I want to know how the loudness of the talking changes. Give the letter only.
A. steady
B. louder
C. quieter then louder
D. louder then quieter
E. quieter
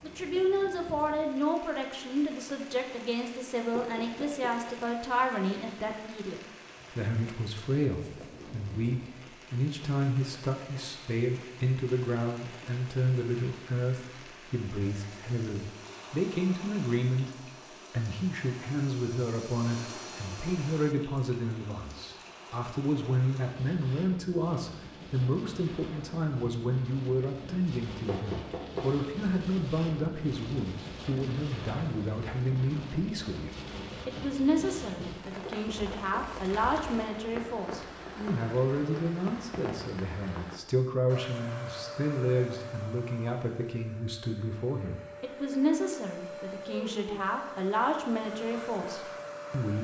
A.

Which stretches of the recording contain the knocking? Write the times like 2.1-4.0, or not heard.
3.8-4.5, 28.1-28.9, 35.5-36.4.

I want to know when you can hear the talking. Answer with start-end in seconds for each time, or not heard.
0.0-49.8.